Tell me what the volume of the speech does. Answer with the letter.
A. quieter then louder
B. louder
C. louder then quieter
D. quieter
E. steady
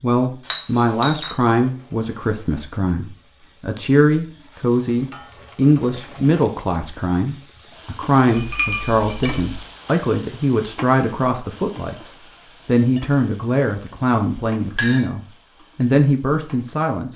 E.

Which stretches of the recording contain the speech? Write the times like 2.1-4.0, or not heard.
0.0-17.1.